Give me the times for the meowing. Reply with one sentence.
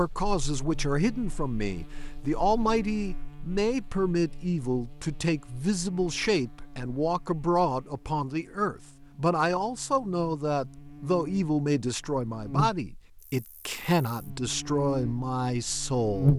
You can't hear the meowing here.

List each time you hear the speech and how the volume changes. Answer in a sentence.
You can hear the speech from 0.0 to 16.3 s, at a steady volume.